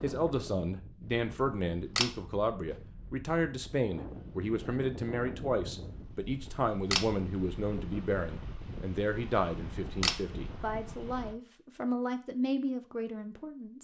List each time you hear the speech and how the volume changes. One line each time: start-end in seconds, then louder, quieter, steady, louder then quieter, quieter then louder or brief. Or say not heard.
0.0-13.7 steady.